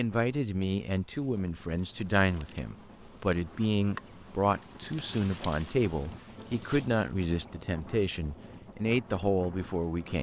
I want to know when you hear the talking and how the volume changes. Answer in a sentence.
You can hear the talking from 0.0 to 10.1 s, at a steady volume.